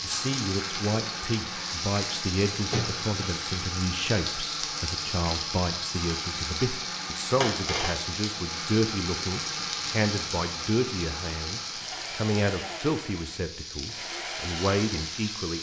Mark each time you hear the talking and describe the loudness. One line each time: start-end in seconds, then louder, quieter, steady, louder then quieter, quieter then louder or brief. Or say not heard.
0.0-15.5 steady.